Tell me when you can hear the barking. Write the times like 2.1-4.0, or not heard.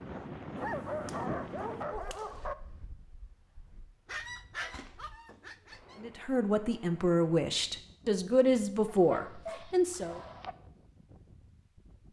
0.6-2.5, 4.0-6.0, 8.8-10.6.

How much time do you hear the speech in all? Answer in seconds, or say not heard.
4 s.